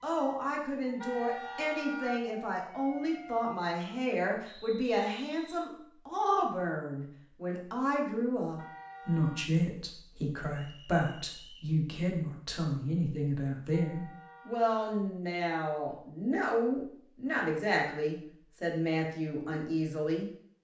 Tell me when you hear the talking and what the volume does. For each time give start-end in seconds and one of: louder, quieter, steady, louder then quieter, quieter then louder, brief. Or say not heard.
0.0-20.2 steady.